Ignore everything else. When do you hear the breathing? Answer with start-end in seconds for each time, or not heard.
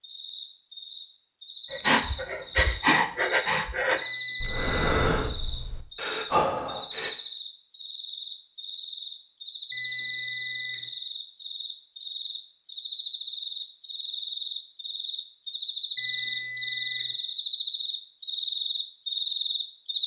1.7-7.2.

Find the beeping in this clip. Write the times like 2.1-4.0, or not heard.
4.0-5.2, 9.7-10.8, 15.9-17.1.